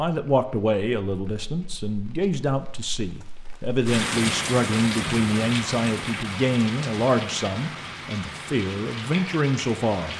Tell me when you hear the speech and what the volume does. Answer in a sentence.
The speech can be heard from 0.0 to 10.1 s, at a steady volume.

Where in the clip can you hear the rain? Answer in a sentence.
You can hear the rain from 0.1 to 10.1 s.